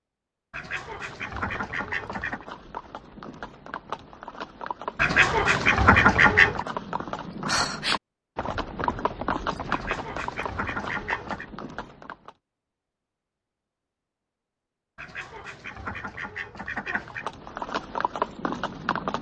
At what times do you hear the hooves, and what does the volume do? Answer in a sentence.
The hooves can be heard from 1.1 to 12.3 s, getting louder then quieter; and briefly from 17.1 to 19.1 s.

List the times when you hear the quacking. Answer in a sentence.
You can hear the quacking from 0.5 to 2.5 s, from 5.0 to 6.7 s, from 9.7 to 11.4 s and from 14.9 to 17.3 s.